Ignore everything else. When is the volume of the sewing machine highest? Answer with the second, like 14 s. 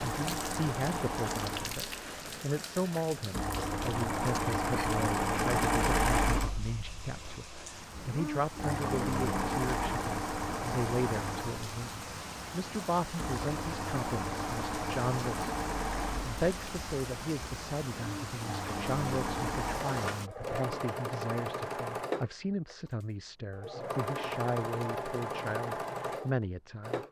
6 s.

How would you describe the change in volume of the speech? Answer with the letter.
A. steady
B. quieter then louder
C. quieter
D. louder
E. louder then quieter
A.